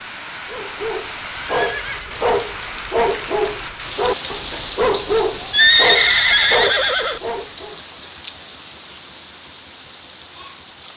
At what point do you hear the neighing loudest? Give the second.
6 s.